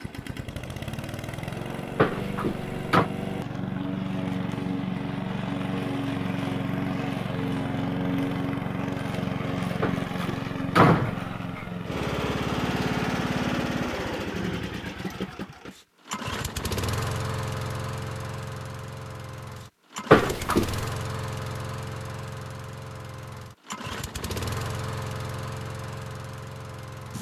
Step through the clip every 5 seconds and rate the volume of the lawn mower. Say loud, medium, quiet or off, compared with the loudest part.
loud, loud, loud, medium, medium, medium.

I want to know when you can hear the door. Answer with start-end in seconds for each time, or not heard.
1.9-3.1, 9.8-11.7, 20.1-20.9.